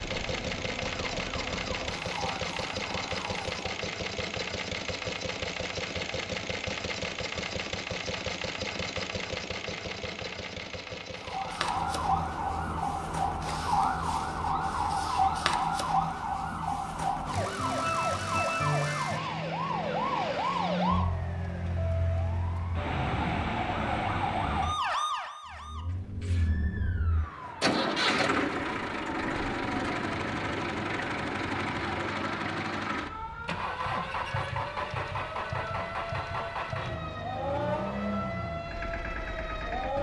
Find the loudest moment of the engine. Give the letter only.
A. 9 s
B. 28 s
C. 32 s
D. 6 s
B.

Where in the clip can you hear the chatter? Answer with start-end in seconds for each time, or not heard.
not heard.